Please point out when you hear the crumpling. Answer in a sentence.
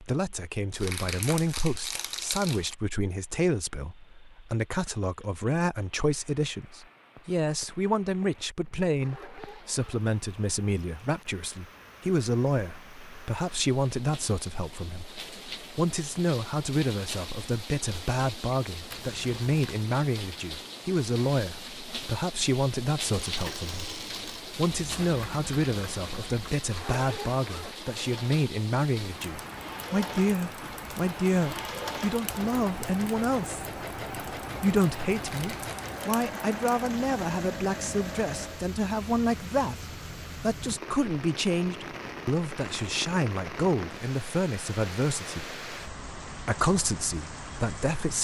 The crumpling can be heard from 0.7 to 2.8 s, from 18.9 to 19.9 s and from 35.4 to 36.0 s.